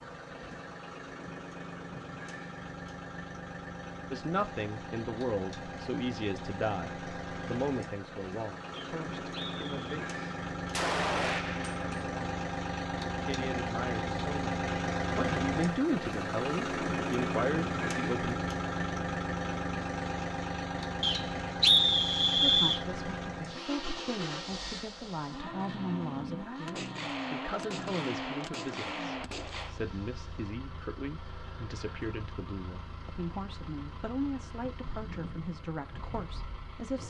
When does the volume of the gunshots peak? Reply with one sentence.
The loudest moment of the gunshots is at 11 seconds.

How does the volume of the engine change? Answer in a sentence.
The volume of the engine goes up, then down.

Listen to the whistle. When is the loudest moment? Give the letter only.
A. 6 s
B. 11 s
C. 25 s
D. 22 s
D.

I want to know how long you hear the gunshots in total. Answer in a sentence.
The gunshots can be heard for 4 seconds in total.